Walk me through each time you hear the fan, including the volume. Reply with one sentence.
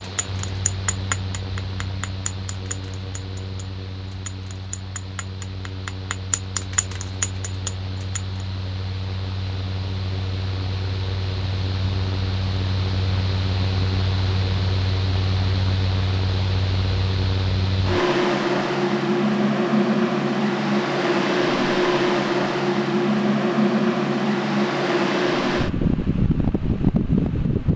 The fan can be heard from 0.0 to 27.7 s, getting louder.